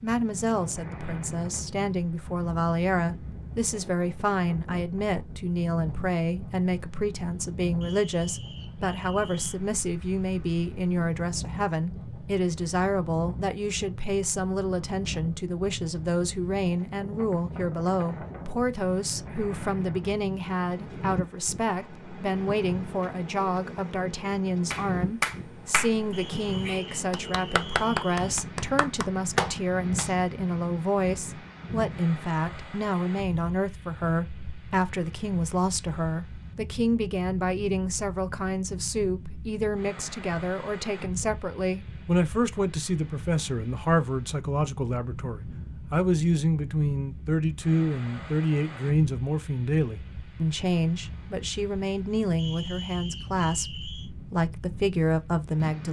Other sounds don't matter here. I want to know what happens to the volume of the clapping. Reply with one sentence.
The loudness of the clapping goes down, then up.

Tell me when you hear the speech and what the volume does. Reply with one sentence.
The speech can be heard from 0.0 to 55.8 s, at a steady volume.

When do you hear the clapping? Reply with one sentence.
The clapping can be heard from 24.7 to 30.1 s.